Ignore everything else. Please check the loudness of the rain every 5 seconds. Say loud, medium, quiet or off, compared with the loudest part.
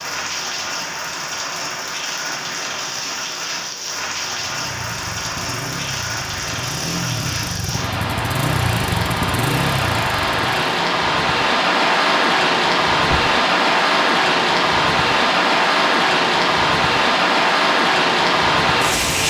medium, medium, loud, loud.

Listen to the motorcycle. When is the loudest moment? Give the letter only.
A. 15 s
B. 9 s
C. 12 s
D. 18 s
B.